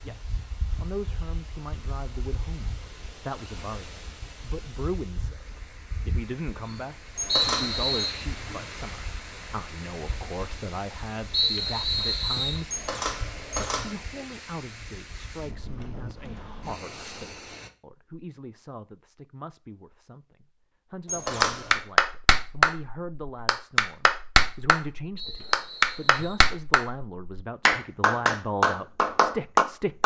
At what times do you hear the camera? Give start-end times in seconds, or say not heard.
7.2-7.9, 12.7-13.9, 21.1-21.8.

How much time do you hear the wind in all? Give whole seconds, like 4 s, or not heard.
18 s.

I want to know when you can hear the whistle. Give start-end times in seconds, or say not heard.
7.2-8.2, 11.3-12.6, 25.1-26.4.